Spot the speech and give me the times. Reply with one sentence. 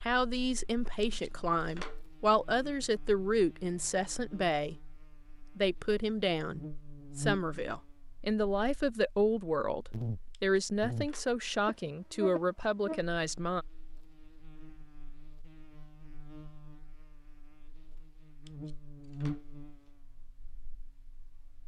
You can hear the speech from 0.0 to 4.8 s and from 5.5 to 13.7 s.